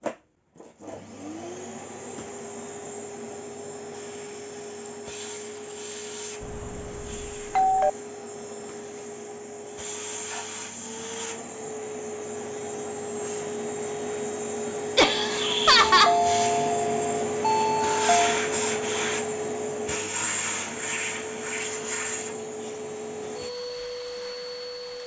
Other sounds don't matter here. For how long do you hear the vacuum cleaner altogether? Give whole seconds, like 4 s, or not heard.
25 s.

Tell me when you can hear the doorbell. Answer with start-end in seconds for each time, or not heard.
6.4-7.9, 15.8-18.4.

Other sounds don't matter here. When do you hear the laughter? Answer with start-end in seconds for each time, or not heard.
14.9-16.1.